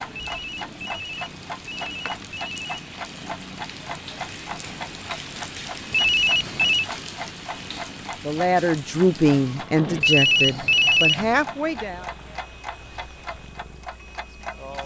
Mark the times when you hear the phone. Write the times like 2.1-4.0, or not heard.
0.2-2.6, 5.9-6.8, 10.0-11.4.